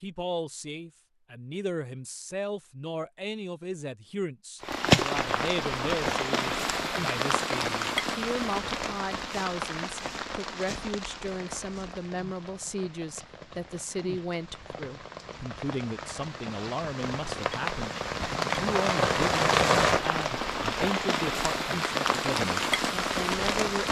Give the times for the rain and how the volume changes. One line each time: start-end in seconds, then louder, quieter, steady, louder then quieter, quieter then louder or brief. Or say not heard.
4.6-23.8 quieter then louder.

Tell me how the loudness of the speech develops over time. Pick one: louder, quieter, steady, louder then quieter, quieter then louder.
steady.